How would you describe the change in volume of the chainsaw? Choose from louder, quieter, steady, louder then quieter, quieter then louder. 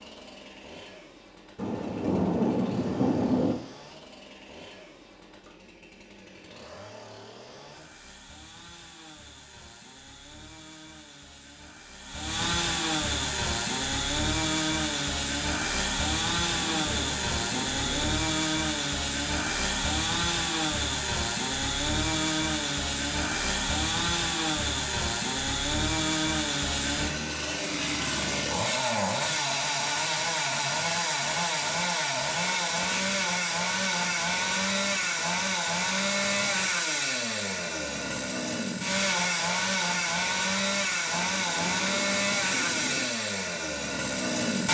louder.